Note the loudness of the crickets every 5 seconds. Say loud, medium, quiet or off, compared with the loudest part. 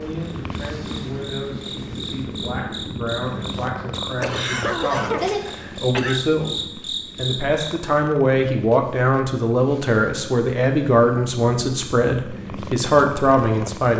medium, loud, off.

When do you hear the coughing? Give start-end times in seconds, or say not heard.
4.2-6.2.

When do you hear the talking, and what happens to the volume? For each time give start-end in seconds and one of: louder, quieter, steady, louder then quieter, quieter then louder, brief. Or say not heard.
0.0-13.9 louder.